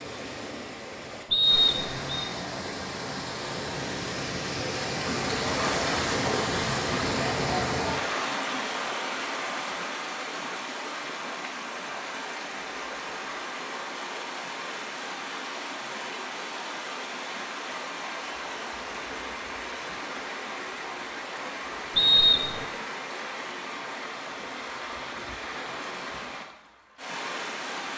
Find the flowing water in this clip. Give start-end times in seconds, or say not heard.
0.0-27.9.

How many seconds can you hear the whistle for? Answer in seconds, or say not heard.
2 s.